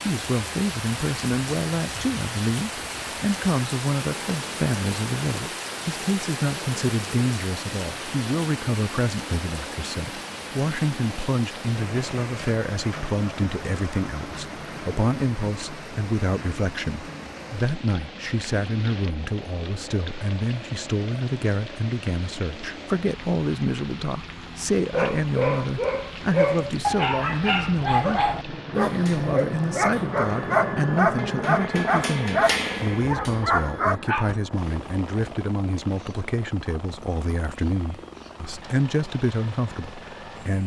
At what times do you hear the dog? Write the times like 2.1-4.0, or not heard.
24.9-34.4.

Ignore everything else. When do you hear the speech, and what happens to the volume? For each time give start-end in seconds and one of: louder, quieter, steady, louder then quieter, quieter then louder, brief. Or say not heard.
0.0-40.6 steady.